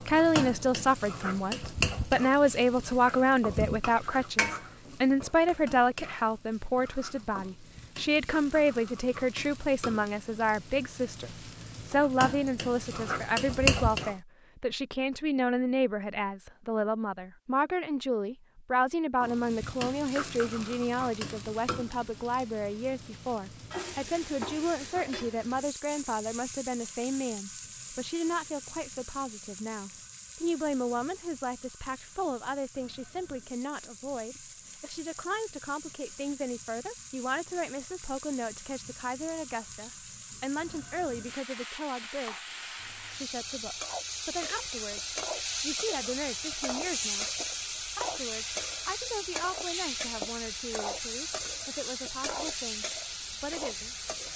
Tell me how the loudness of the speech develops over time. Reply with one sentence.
The loudness of the speech goes down.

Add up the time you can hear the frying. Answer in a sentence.
The frying can be heard for 49 seconds in total.